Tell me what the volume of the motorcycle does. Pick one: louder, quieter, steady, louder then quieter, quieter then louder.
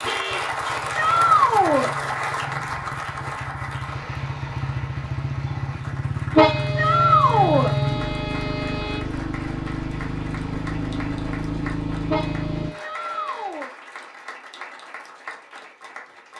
louder.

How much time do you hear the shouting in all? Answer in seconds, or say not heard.
3 s.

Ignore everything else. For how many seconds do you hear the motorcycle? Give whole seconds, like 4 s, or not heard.
13 s.